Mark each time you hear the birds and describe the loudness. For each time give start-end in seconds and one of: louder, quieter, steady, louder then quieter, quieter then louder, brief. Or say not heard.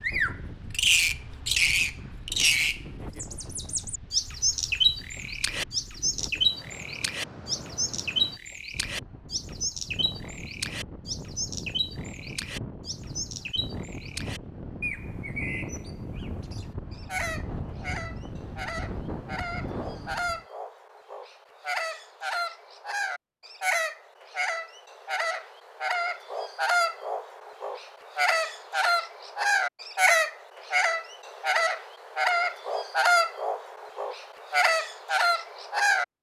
0.0-36.0 quieter then louder.